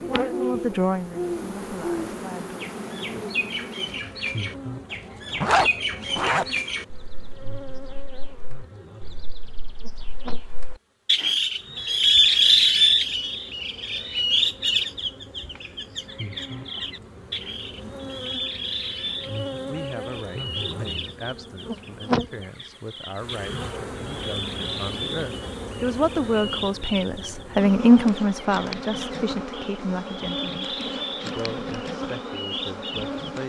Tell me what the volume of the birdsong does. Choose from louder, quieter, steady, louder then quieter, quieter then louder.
louder then quieter.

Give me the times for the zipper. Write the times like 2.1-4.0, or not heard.
5.3-6.5.